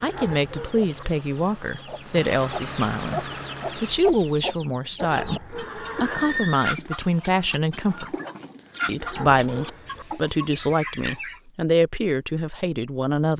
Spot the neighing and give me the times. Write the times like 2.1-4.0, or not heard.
5.5-6.7.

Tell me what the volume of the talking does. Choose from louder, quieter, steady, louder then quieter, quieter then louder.
steady.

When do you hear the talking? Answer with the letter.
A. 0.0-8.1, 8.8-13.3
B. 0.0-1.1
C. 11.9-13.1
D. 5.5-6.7
A.